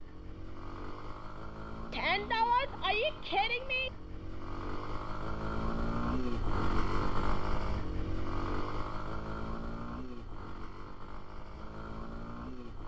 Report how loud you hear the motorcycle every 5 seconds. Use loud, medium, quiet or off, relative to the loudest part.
medium, loud, medium.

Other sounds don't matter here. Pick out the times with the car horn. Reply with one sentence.
You can't hear the car horn here.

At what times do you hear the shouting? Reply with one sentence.
You can hear the shouting from 1.9 to 3.9 s.